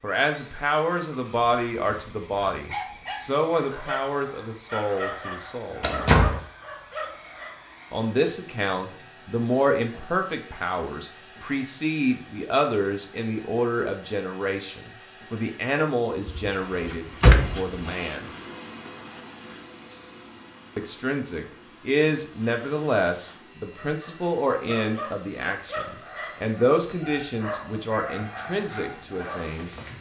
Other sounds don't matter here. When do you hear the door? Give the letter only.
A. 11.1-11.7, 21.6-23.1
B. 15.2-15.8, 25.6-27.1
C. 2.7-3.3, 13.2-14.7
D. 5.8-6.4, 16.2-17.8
D.